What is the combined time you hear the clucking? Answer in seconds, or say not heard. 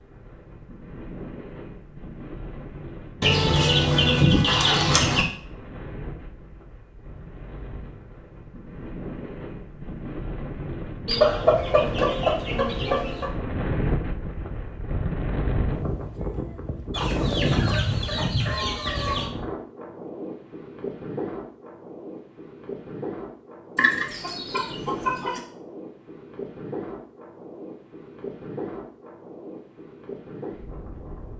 8 s.